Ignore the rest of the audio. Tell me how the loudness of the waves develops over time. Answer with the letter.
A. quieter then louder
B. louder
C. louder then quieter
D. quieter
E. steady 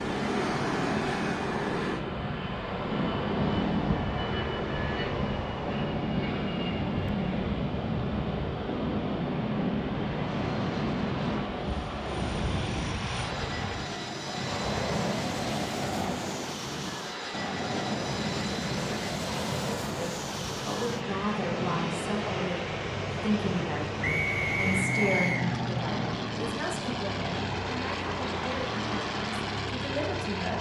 D.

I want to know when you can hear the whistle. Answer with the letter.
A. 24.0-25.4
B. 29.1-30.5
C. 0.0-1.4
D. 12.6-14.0
A.